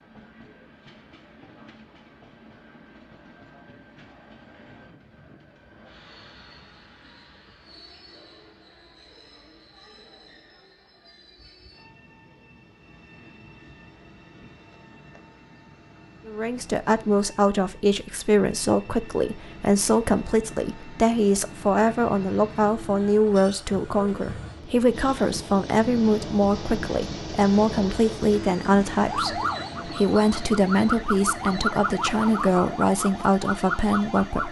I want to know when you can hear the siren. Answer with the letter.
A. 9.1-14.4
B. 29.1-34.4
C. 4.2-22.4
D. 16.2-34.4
B.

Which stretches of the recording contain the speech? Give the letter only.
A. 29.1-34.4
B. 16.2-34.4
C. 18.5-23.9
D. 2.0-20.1
B.